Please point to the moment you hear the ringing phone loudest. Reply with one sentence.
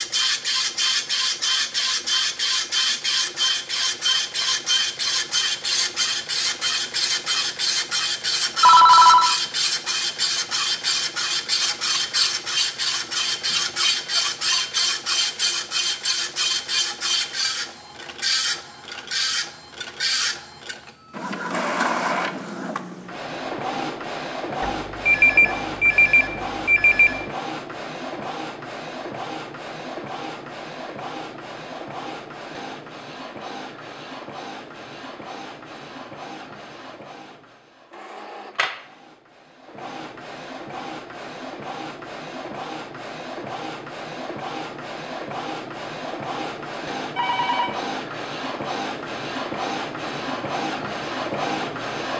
The volume of the ringing phone peaks at 9 seconds.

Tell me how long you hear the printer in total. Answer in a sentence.
The printer can be heard for 52 seconds in total.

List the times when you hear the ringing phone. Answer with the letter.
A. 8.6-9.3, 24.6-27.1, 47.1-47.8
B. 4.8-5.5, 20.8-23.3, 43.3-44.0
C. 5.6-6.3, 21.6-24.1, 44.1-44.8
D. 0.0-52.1
A.